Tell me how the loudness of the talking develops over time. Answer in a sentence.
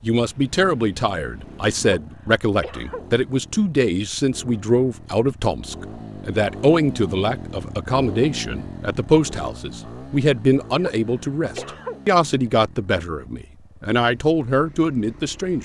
The loudness of the talking stays about the same.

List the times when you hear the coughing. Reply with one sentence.
You can hear the coughing from 1.8 to 3.1 s and from 10.8 to 12.0 s.